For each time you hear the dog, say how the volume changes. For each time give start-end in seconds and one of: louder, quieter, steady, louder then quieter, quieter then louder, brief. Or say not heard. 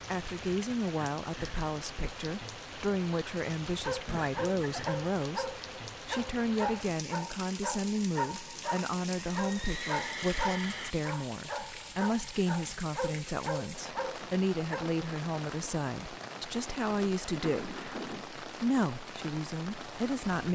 3.6-15.0 steady.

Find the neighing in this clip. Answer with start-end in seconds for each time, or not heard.
4.0-4.9, 9.2-10.9, 17.3-18.2.